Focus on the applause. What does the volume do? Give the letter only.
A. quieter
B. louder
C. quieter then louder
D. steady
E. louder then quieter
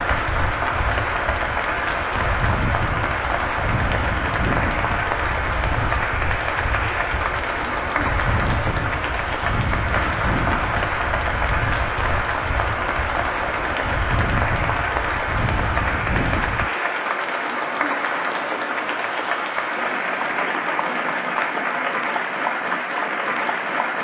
D.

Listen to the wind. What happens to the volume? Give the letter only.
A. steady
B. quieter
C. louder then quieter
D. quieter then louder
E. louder
A.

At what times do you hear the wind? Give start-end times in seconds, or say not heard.
0.0-16.7.